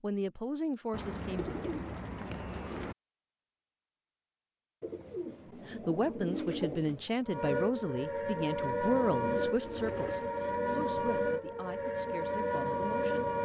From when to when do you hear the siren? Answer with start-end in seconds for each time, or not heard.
7.2-13.4.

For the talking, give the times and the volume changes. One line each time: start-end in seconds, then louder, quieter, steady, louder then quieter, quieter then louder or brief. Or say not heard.
0.0-1.7 brief
5.7-13.3 quieter.